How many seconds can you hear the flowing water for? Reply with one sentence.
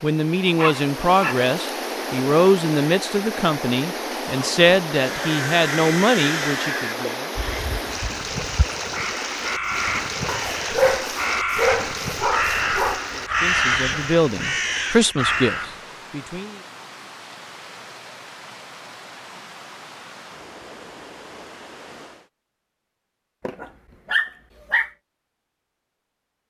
The flowing water can be heard for 22 seconds in total.